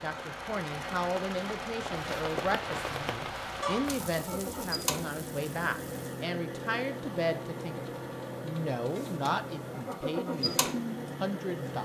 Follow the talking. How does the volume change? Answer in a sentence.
The volume of the talking stays about the same.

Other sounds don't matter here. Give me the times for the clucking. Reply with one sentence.
You can hear the clucking from 3.6 to 4.8 s.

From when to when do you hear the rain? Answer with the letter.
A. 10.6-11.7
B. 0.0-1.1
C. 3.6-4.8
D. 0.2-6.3
D.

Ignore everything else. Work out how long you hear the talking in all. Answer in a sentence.
You can hear the talking for 12 seconds altogether.